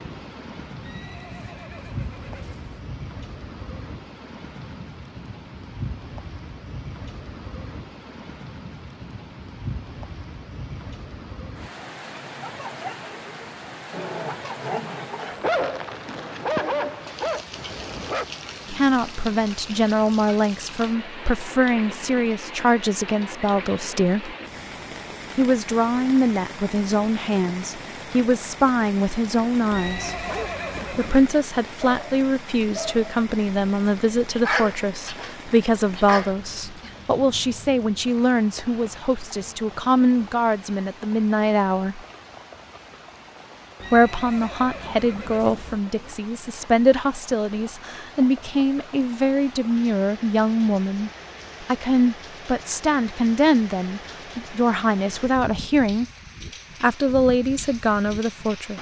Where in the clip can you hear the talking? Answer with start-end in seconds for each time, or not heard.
18.6-24.4, 25.4-30.2, 30.9-42.0, 43.9-56.0, 56.8-58.7.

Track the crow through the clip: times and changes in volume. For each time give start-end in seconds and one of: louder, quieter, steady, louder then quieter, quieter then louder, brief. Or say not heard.
not heard.